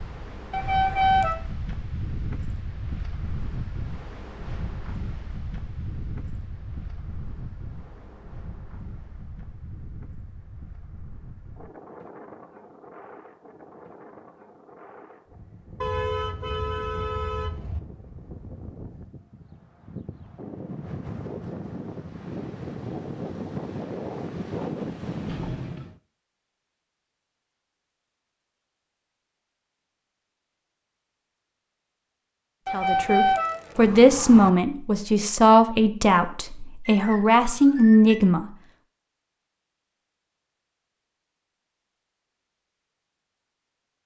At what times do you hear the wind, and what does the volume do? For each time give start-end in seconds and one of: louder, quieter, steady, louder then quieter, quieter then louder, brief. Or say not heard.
0.0-26.0 quieter then louder.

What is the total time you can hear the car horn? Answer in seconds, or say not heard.
5 s.